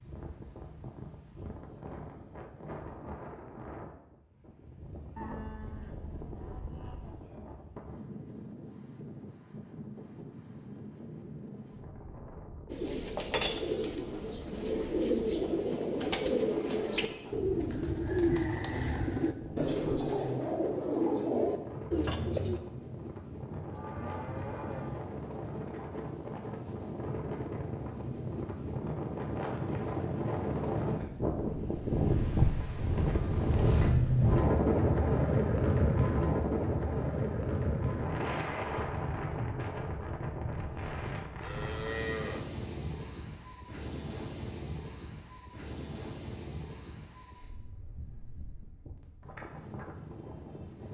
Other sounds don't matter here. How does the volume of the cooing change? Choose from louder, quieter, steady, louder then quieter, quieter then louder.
steady.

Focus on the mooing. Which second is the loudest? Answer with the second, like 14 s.
42 s.